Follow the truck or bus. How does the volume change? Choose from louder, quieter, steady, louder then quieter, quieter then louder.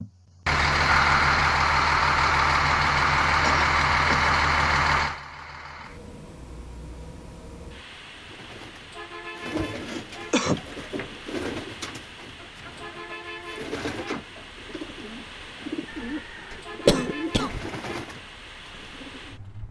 quieter.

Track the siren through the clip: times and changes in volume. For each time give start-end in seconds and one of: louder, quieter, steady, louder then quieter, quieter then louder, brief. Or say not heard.
not heard.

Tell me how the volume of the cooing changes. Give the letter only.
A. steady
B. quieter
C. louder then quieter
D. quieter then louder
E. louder
A.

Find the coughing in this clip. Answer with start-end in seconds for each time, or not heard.
3.4-4.3, 9.6-10.7, 16.5-17.6.